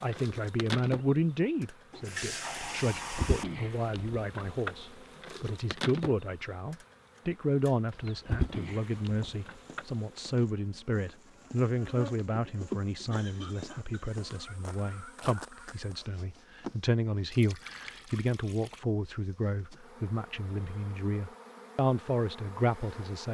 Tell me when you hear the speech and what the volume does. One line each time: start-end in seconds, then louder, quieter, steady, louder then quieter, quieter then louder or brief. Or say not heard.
0.0-23.2 steady.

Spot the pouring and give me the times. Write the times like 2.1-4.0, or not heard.
1.9-3.5, 17.3-18.8.